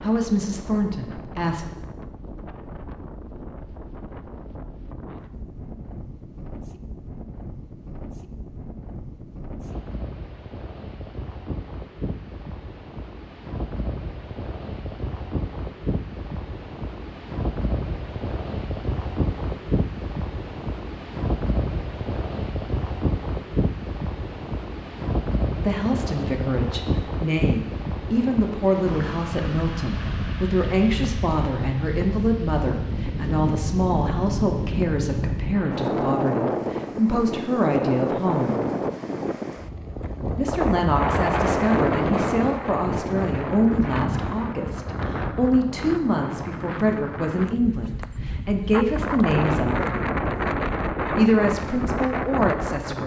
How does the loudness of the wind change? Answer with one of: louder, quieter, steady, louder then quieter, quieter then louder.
louder.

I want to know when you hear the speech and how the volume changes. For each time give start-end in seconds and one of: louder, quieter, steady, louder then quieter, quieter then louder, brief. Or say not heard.
0.0-1.6 brief
25.6-38.6 steady
40.4-49.8 steady
51.1-53.0 brief.